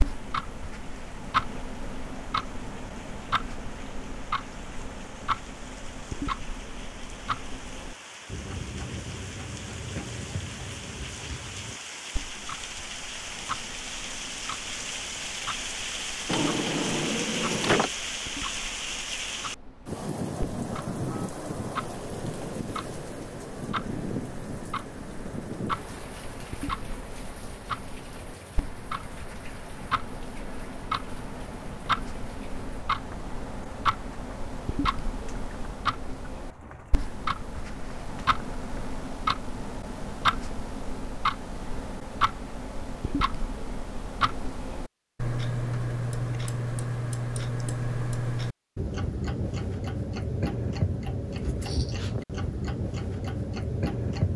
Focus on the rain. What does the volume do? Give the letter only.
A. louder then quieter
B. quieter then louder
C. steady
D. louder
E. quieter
A.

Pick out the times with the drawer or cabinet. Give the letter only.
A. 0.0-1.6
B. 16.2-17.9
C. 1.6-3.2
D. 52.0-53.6
B.